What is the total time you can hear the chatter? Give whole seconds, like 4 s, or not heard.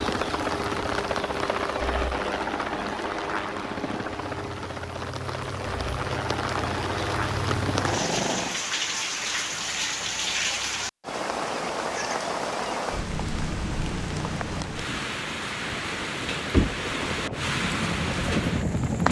not heard.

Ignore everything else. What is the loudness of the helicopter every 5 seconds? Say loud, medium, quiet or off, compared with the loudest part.
loud, loud, off, loud.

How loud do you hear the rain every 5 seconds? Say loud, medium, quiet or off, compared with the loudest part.
medium, loud, loud, loud.